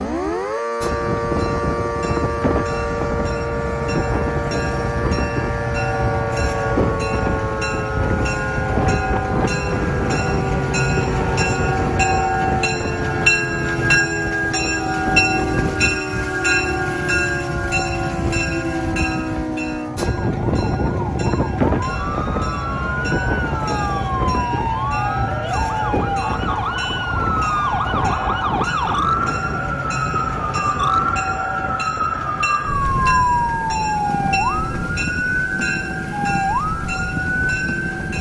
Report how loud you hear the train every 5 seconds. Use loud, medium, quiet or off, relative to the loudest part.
medium, loud, loud, loud, loud, medium, medium, medium.